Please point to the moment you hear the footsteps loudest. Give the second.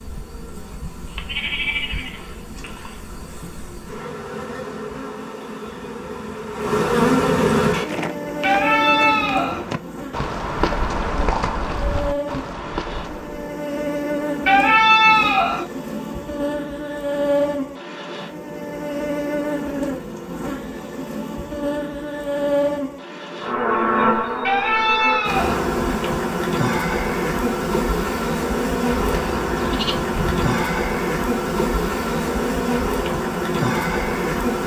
11 s.